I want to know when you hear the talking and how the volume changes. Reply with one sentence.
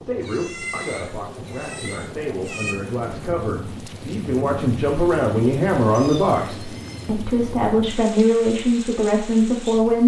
You can hear the talking from 0.0 to 10.0 s, getting louder.